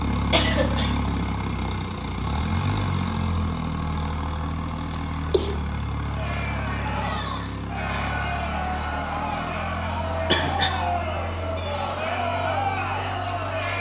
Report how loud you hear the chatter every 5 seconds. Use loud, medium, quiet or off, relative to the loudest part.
off, loud, loud.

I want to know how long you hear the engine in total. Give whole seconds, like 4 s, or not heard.
14 s.